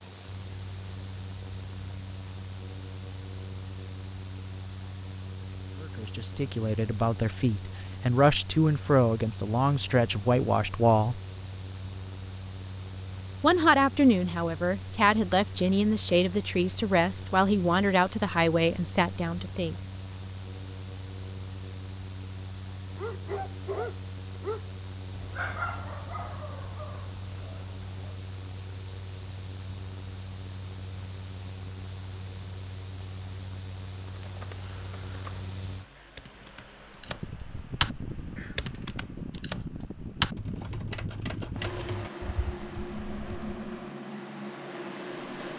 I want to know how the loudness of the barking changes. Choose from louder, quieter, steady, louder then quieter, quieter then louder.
quieter.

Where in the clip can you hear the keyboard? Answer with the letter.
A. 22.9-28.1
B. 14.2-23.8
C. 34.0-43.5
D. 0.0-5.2
C.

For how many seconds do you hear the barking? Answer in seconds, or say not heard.
5 s.